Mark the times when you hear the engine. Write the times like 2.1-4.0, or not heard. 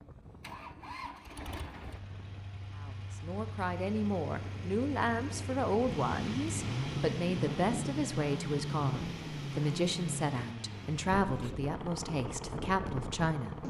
0.0-13.6.